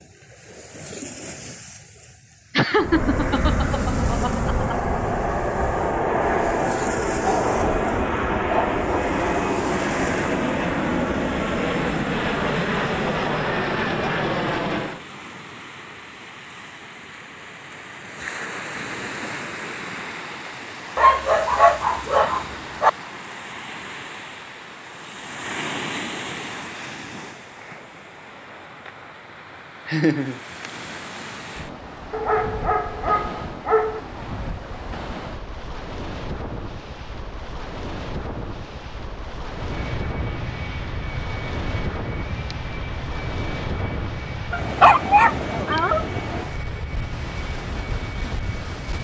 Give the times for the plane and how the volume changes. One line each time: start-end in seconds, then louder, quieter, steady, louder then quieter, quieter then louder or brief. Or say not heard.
2.8-15.0 steady
39.5-48.9 steady.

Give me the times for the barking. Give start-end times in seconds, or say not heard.
7.2-8.8, 20.9-22.9, 32.1-34.0, 44.5-46.0.